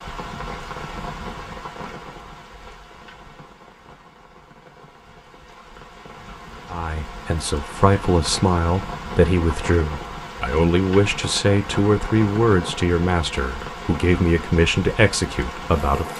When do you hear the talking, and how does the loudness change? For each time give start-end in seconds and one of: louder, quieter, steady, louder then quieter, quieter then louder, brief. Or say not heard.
6.7-16.1 steady.